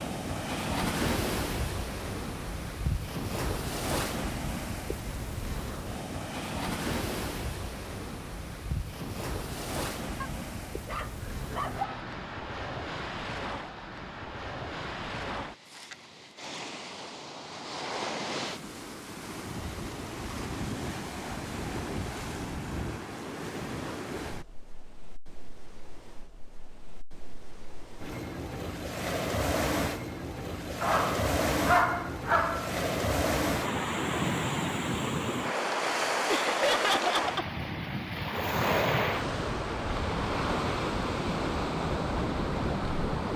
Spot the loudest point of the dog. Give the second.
32 s.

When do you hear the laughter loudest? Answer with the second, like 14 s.
37 s.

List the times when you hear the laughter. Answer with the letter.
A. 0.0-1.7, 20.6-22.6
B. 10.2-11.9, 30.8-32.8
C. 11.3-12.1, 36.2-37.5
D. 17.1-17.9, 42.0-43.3
C.